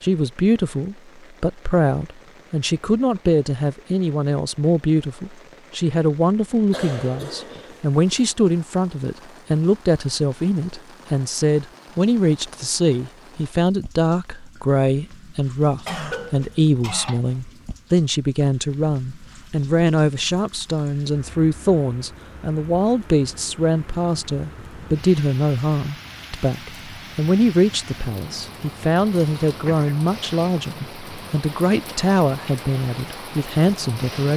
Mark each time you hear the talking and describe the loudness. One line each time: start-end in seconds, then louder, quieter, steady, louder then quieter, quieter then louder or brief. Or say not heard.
0.0-34.3 steady.